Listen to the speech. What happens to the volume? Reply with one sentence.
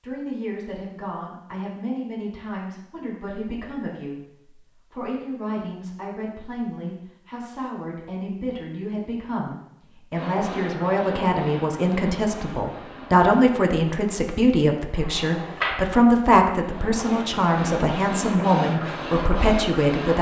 The volume of the speech goes up.